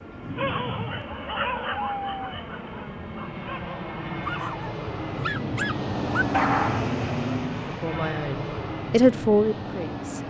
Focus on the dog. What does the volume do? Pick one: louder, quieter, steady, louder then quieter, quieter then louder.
quieter then louder.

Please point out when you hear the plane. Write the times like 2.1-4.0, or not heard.
0.0-10.2.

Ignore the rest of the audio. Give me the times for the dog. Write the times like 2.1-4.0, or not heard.
0.2-6.8.